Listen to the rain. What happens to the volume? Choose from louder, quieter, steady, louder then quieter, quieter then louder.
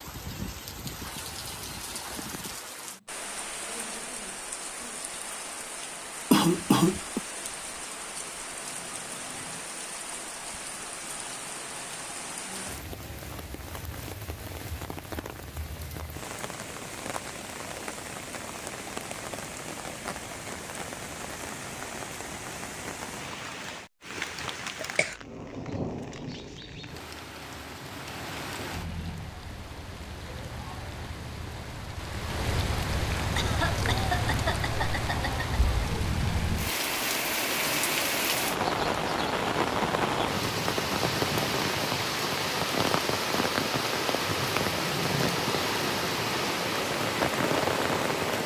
louder.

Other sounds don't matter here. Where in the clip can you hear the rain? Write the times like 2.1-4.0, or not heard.
0.0-48.4.